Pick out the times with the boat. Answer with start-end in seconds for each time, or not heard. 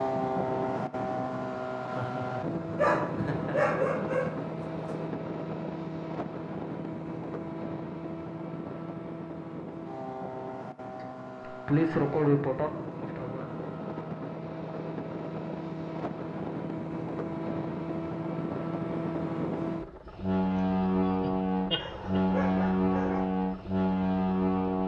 0.0-24.8.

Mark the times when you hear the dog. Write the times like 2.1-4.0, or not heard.
2.8-5.0, 21.8-23.3.